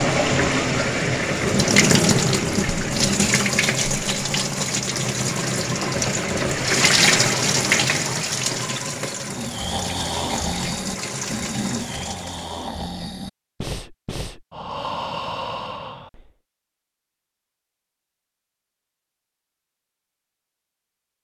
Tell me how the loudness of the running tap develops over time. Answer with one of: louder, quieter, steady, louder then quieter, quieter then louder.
quieter.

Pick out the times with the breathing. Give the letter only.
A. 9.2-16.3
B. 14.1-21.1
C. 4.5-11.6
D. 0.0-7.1
A.